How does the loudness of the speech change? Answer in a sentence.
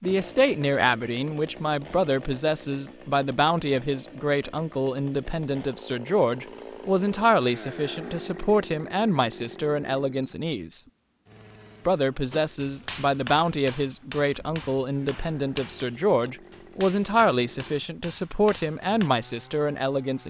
The volume of the speech stays about the same.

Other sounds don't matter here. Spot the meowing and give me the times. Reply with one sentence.
You can't hear the meowing here.